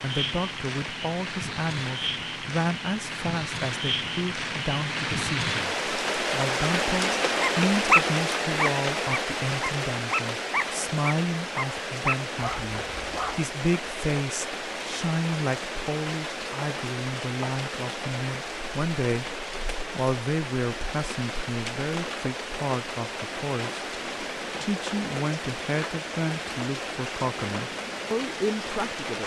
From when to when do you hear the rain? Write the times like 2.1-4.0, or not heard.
0.0-29.2.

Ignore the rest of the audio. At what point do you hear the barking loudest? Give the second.
8 s.